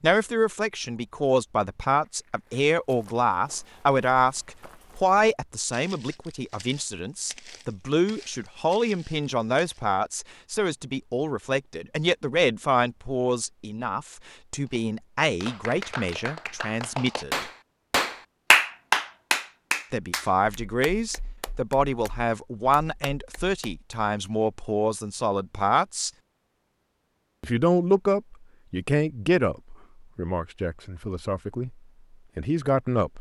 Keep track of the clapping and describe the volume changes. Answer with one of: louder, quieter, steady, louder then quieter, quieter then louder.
louder then quieter.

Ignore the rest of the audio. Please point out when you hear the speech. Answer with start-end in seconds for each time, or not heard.
0.0-17.5, 19.9-26.1, 27.4-31.8, 32.4-33.1.